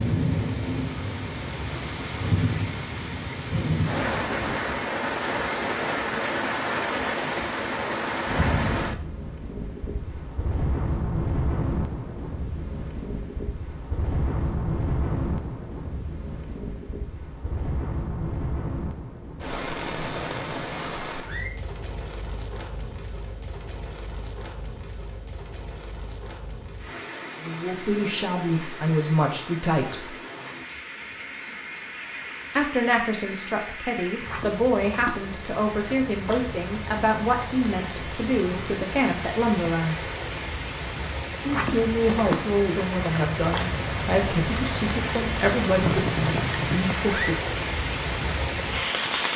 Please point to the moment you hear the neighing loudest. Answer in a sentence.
The loudest moment of the neighing is at 46 seconds.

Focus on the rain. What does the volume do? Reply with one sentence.
The loudness of the rain goes down, then up.